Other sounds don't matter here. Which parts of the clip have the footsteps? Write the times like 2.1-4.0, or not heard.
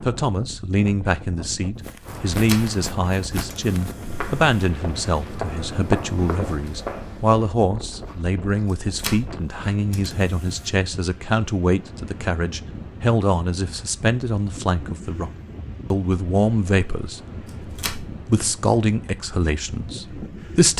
1.8-9.7.